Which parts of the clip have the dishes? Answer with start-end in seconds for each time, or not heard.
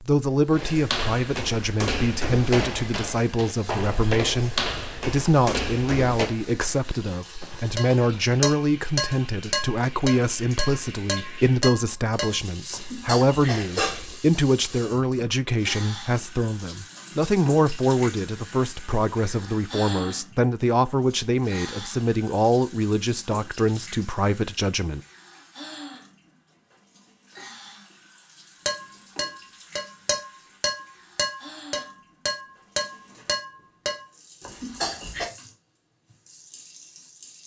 7.8-14.2, 28.6-35.3.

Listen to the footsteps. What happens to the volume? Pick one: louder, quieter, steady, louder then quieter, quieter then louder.
quieter.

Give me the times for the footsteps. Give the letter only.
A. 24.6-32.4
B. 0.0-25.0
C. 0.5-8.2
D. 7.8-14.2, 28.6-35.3
C.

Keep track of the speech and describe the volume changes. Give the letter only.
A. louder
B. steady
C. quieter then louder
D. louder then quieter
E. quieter
B.